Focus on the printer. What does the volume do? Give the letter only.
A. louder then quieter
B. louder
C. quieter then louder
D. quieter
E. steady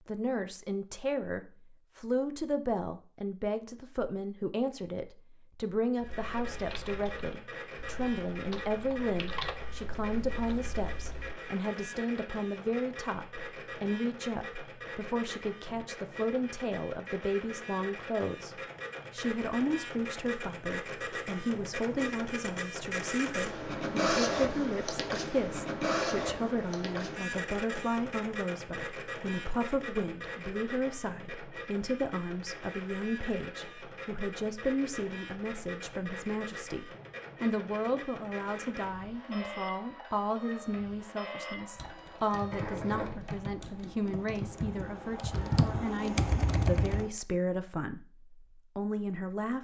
A.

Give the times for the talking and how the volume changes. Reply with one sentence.
You can hear the talking from 0.1 to 49.5 s, at a steady volume.